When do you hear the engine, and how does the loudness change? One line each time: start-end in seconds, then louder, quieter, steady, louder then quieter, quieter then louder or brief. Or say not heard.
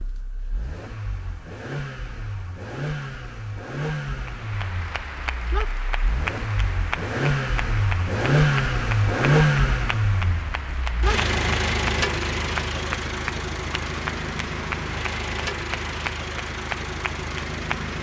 0.0-17.9 louder then quieter.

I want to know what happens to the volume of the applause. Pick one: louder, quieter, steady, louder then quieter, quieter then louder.
steady.